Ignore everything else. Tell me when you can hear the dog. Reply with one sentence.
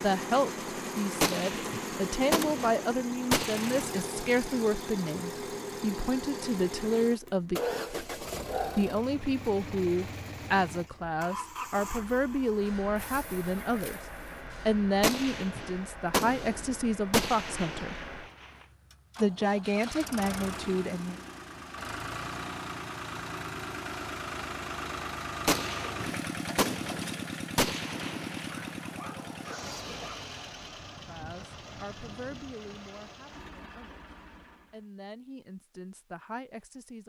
The dog can be heard from 7.0 to 8.9 s, from 12.9 to 14.4 s and from 28.5 to 30.2 s.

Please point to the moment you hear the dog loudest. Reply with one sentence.
The volume of the dog peaks at 8 seconds.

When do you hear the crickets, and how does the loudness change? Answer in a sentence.
The crickets can't be heard in this clip.